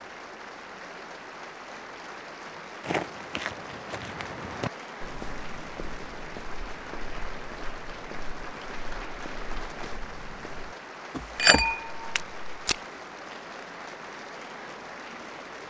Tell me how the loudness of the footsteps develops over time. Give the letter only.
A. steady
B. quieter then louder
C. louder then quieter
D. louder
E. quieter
B.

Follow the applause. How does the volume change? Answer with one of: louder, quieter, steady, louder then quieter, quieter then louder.
steady.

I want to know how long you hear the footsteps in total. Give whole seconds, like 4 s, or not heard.
10 s.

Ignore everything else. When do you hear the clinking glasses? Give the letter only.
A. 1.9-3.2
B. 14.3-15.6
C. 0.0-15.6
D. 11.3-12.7
D.